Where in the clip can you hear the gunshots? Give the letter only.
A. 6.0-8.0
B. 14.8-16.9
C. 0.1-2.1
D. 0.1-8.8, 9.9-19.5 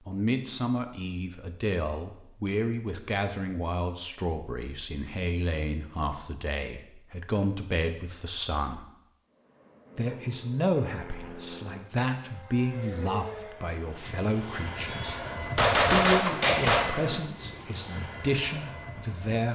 B.